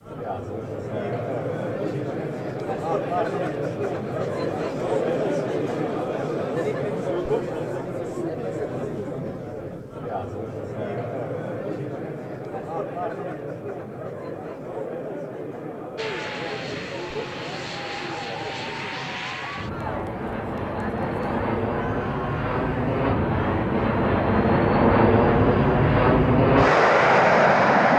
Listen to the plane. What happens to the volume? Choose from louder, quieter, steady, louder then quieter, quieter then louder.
louder.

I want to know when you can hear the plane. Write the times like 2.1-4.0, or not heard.
15.9-27.9.